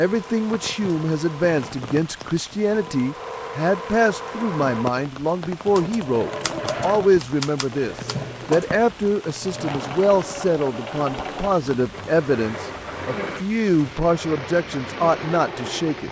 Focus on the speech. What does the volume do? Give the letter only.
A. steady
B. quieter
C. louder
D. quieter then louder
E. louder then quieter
A.